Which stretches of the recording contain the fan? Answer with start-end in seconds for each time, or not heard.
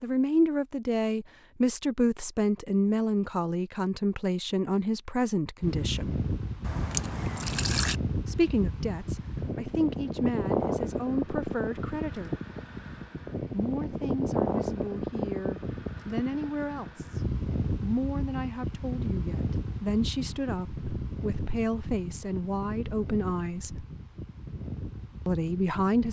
5.6-26.0.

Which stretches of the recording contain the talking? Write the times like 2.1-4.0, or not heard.
0.0-6.2, 8.2-12.3, 13.5-23.9, 25.2-26.0.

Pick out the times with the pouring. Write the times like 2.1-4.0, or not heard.
6.6-8.0.